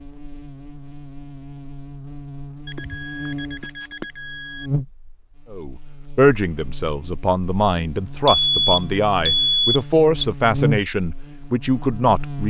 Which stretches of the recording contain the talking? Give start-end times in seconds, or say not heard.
5.5-12.4.